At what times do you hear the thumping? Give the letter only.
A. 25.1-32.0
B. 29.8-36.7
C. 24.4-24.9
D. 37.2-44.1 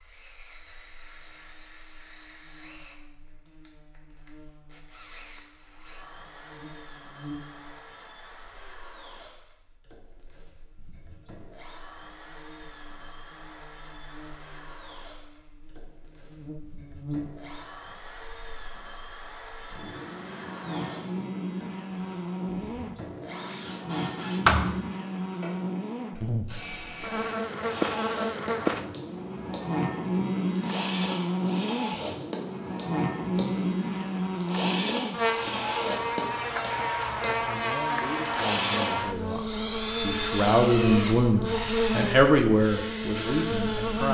C.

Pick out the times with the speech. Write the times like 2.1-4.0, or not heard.
37.2-44.1.